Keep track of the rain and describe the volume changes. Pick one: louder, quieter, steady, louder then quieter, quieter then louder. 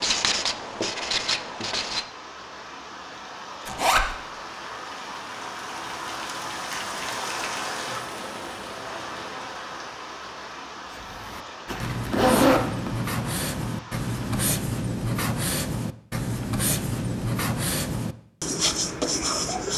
louder then quieter.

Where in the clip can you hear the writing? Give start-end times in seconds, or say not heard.
0.0-2.1, 10.9-19.7.